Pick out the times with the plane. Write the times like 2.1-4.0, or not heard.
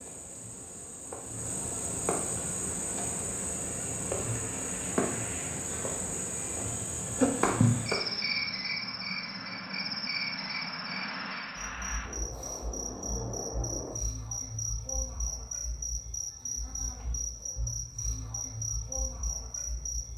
2.4-13.9.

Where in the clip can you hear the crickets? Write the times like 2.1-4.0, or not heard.
0.0-20.1.